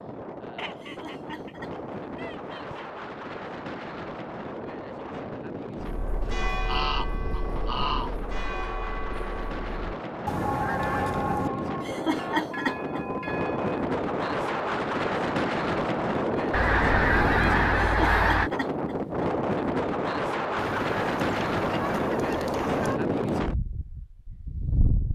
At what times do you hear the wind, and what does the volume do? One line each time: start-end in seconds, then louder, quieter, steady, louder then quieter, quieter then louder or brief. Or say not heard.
0.0-25.1 louder.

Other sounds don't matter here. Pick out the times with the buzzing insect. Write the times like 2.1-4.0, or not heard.
not heard.